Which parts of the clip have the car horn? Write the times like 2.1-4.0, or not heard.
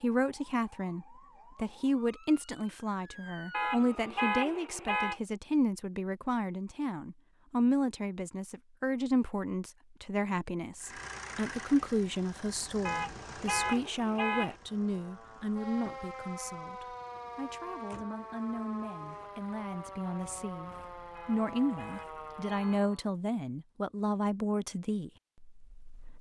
3.5-5.2, 12.8-14.6, 21.1-22.9.